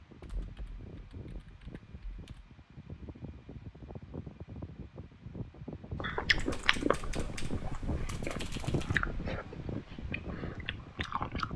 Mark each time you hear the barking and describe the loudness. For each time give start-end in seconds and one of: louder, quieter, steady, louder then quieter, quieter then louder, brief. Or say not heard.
not heard.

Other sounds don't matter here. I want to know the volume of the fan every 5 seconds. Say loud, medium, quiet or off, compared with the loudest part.
medium, loud, loud.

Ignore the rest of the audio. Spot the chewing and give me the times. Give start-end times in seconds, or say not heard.
6.0-11.5.